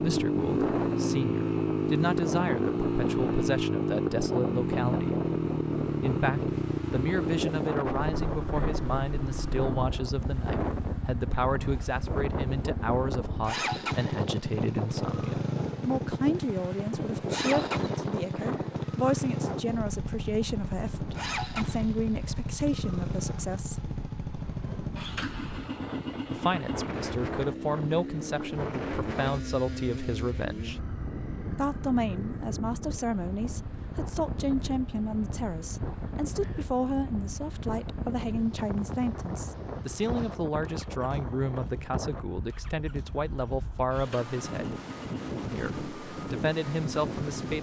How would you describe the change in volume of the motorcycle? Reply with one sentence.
The loudness of the motorcycle goes down.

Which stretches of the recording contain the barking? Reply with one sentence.
You can't hear the barking here.